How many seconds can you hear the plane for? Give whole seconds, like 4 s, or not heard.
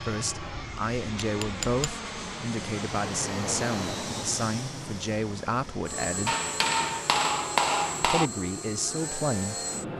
10 s.